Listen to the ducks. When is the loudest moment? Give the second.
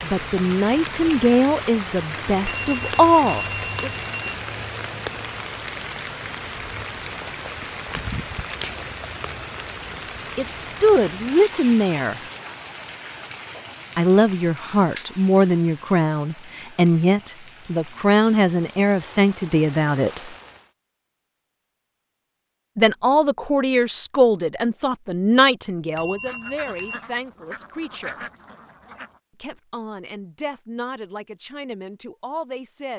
28 s.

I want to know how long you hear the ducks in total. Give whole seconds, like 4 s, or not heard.
3 s.